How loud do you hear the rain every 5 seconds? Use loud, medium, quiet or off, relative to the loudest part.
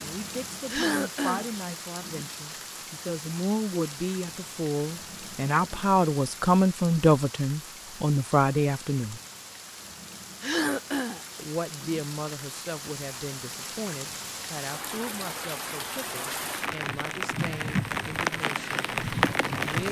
medium, quiet, medium, loud.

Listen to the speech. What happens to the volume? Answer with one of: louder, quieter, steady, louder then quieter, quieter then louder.
louder then quieter.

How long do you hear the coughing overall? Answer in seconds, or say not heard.
2 s.